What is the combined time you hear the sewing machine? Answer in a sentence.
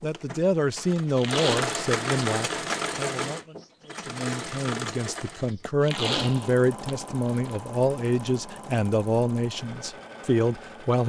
You can hear the sewing machine for 11 seconds altogether.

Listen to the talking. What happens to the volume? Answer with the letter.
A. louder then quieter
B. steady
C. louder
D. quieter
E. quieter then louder
E.